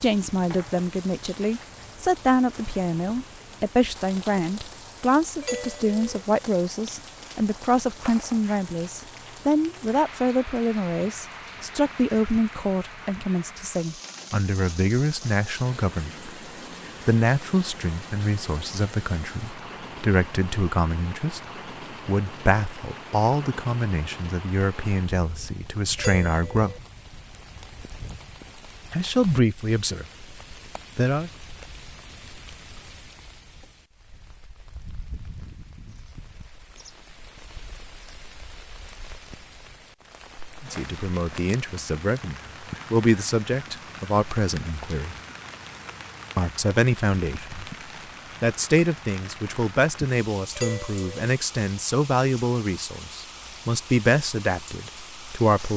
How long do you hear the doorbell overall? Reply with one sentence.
The doorbell can be heard for 2 seconds in total.